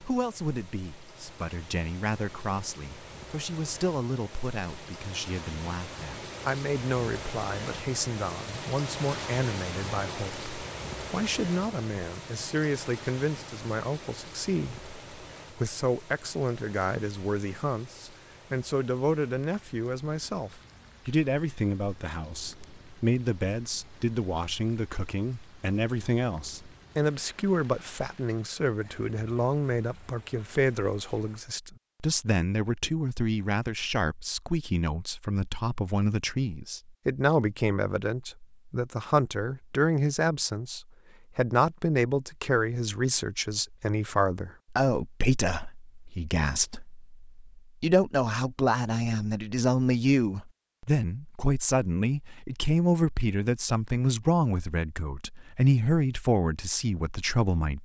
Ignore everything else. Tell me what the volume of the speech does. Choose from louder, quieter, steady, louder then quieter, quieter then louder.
louder.